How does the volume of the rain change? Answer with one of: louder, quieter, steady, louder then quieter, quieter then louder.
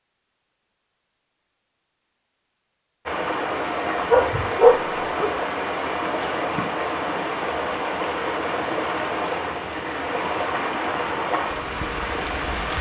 steady.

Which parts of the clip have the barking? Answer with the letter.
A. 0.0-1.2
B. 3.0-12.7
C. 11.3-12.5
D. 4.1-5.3
D.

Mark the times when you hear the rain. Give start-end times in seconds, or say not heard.
3.0-12.7.